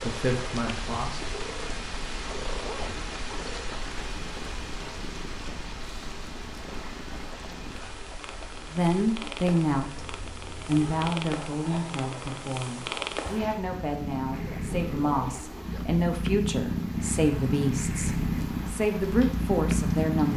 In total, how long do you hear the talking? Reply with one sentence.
The talking can be heard for 13 seconds in total.